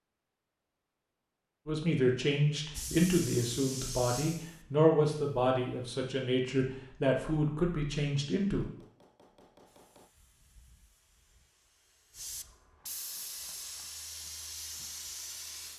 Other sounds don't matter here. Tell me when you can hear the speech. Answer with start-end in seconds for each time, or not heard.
1.6-8.7.